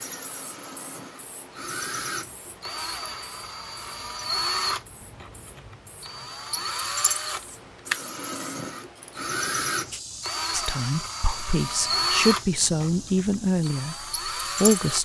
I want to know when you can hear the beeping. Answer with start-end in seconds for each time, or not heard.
not heard.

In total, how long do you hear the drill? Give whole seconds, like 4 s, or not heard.
15 s.